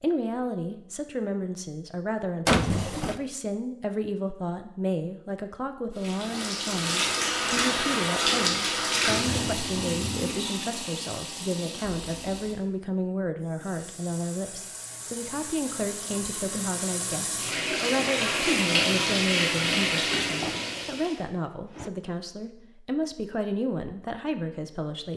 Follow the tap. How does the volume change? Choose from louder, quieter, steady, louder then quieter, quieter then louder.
quieter then louder.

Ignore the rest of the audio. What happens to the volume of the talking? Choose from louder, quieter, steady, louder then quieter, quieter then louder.
steady.